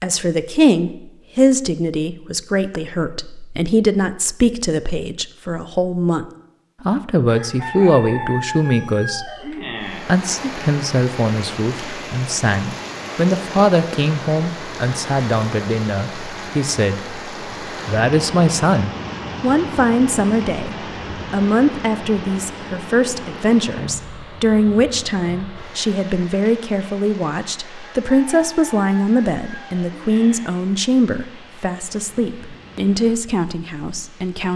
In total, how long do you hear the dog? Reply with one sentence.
You can't hear the dog here.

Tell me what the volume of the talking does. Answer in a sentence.
The volume of the talking stays about the same.